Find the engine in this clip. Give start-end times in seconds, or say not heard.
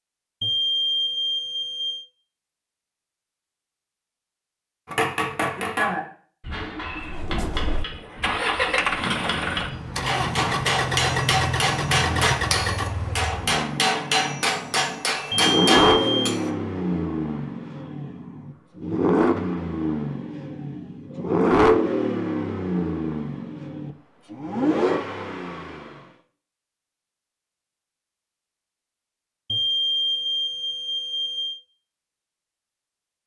6.9-25.9.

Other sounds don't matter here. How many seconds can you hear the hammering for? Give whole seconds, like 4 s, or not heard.
12 s.